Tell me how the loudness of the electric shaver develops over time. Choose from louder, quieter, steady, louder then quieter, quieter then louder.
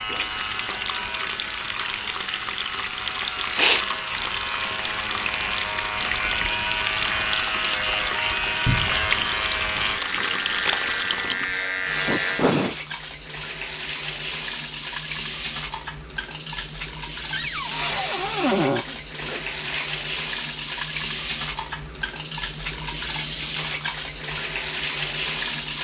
louder.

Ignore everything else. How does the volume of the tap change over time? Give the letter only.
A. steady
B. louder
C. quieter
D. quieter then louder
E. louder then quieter
A.